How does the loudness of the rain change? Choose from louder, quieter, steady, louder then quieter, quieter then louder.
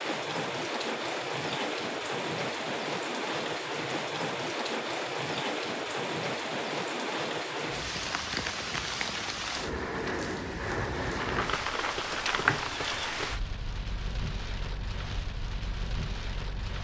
quieter.